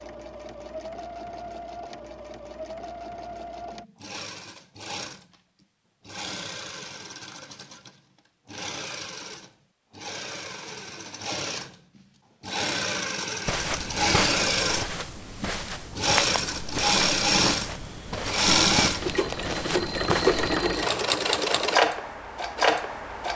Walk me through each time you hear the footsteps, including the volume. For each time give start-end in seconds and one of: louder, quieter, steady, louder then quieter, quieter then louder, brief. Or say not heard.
13.4-20.6 steady.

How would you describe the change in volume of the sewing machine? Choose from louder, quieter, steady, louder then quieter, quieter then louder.
louder.